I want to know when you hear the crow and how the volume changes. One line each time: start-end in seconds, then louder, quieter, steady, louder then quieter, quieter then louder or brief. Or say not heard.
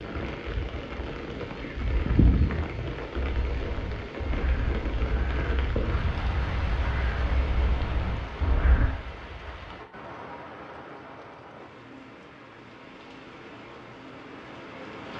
3.1-8.9 steady.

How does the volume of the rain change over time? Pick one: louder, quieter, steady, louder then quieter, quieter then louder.
quieter.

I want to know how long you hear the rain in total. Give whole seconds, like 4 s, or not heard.
15 s.